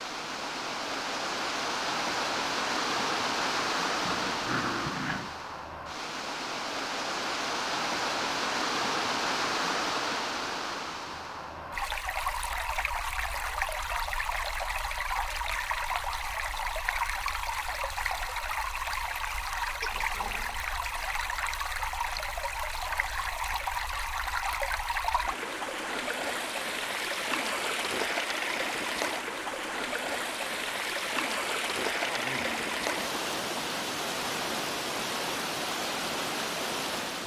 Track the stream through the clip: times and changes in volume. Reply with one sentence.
You can hear the stream from 0.0 to 37.2 s, at a steady volume.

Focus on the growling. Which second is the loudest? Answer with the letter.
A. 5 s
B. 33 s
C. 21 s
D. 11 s
A.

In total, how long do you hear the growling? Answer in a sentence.
The growling can be heard for 3 seconds in total.